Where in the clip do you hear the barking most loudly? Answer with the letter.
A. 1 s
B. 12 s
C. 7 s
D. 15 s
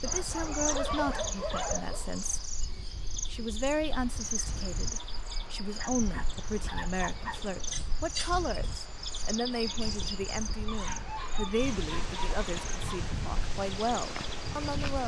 A.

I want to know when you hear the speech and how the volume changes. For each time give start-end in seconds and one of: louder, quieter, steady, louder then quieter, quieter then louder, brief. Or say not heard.
0.0-2.5 brief
3.3-15.0 steady.